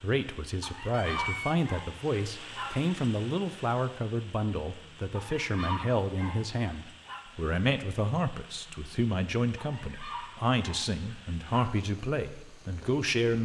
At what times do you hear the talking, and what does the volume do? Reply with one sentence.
The talking can be heard from 0.0 to 13.3 s, at a steady volume.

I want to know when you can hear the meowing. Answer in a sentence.
You can hear the meowing from 0.9 to 1.6 s.